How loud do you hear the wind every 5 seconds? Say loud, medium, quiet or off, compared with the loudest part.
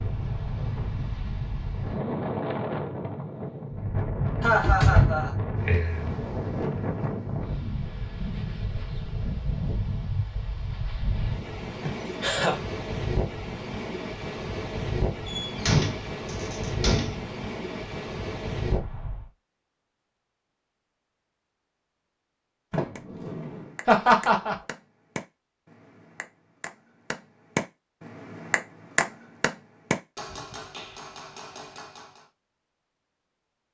loud, loud, loud, loud, off, off, off.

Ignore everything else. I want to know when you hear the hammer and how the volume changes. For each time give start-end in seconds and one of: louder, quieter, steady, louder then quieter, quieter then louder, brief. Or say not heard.
22.9-32.2 louder then quieter.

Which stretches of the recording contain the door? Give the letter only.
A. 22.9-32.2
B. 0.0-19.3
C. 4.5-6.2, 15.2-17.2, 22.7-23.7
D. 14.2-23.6
C.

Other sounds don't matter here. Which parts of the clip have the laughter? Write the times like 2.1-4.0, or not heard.
4.4-5.3, 11.8-12.6, 23.9-24.6.